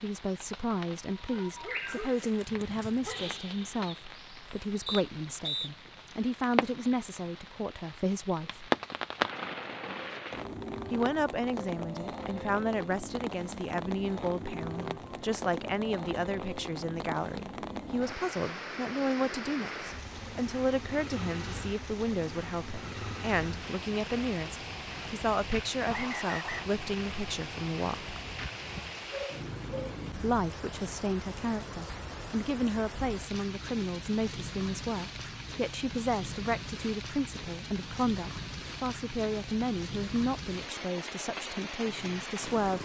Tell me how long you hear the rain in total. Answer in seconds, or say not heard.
43 s.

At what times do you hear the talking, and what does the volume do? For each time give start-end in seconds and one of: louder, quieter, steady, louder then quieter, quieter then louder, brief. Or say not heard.
0.0-8.7 steady
10.9-28.1 steady
30.2-42.7 steady.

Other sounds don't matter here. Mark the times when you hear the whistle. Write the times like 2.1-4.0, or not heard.
4.8-5.7, 25.9-26.6.